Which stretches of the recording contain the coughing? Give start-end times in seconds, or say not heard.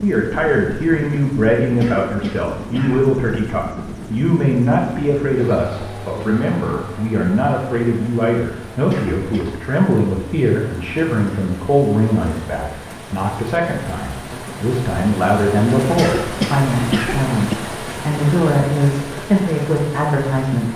1.8-3.1, 8.8-9.4, 15.9-17.6.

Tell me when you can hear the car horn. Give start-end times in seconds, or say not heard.
not heard.